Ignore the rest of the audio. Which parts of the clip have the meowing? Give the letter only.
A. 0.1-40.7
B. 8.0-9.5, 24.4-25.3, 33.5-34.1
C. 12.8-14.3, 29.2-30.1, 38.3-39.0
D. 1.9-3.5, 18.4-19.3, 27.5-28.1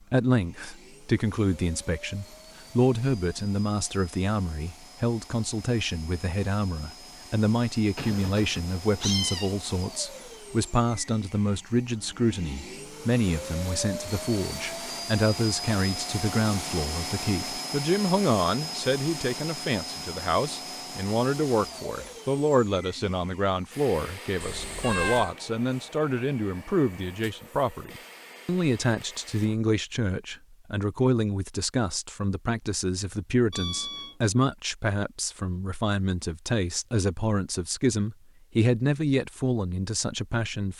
B.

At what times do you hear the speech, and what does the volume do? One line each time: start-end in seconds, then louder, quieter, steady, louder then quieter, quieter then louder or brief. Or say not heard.
0.1-40.7 steady.